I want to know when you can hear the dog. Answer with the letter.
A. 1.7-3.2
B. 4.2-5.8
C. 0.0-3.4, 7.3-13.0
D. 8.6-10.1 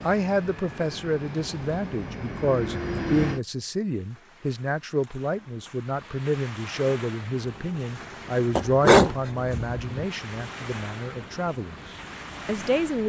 D.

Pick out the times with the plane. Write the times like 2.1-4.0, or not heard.
0.0-3.4, 7.3-13.0.